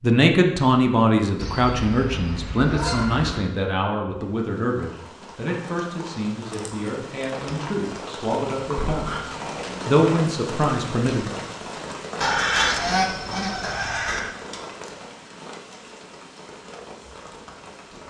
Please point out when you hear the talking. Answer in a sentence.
The talking can be heard from 0.0 to 11.2 s.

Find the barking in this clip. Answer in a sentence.
You can't hear the barking here.